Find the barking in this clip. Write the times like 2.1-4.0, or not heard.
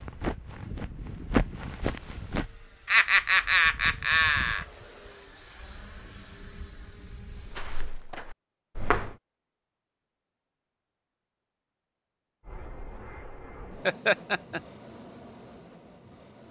not heard.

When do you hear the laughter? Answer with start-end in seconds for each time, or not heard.
2.9-4.7, 13.8-14.6.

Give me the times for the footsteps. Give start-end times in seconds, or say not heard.
0.0-2.5, 7.4-9.2.